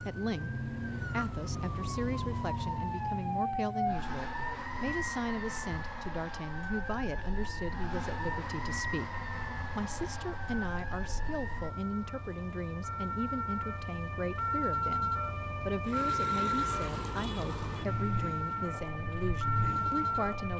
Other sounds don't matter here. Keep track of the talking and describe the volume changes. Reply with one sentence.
The volume of the talking stays about the same.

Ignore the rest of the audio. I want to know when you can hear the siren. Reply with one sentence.
The siren can be heard from 0.0 to 20.5 s.